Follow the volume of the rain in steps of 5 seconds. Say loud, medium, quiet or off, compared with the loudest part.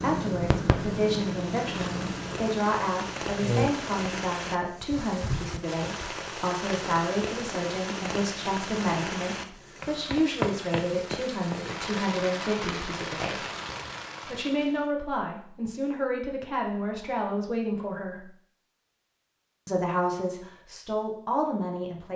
loud, loud, loud, off, off.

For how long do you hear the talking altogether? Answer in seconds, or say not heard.
20 s.